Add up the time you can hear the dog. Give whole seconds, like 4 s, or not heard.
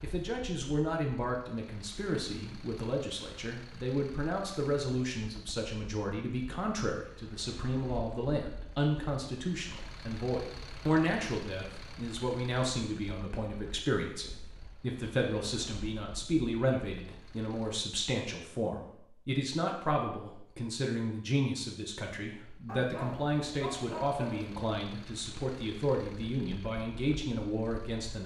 2 s.